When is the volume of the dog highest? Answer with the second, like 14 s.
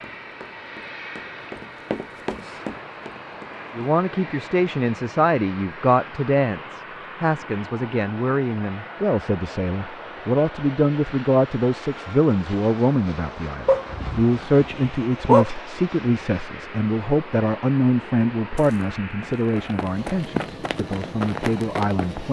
15 s.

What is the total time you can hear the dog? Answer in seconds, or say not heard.
2 s.